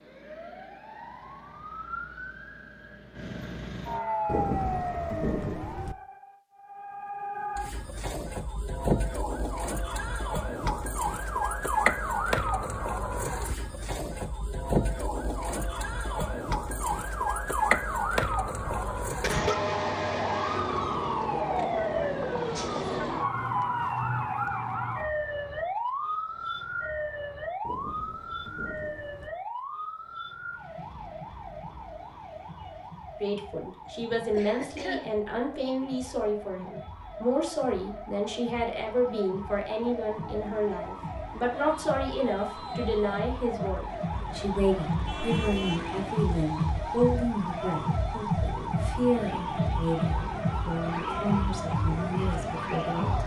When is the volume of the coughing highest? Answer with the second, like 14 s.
19 s.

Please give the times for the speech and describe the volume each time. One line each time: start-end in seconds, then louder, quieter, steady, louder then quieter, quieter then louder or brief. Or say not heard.
33.2-53.2 steady.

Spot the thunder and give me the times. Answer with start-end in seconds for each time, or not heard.
4.2-6.0, 27.6-29.3.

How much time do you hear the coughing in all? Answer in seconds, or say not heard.
2 s.